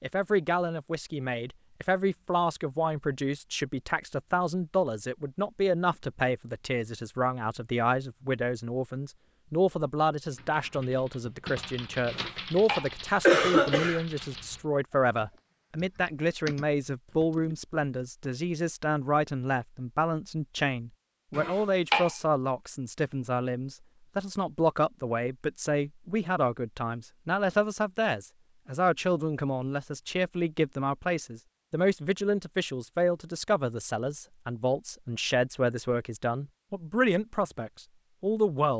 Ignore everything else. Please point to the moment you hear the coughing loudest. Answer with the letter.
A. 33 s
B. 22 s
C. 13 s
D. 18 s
C.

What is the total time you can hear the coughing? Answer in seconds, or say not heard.
3 s.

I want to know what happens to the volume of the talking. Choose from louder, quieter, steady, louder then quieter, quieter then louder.
steady.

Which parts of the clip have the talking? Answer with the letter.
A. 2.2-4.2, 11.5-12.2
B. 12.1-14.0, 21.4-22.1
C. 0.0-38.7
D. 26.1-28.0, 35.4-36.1
C.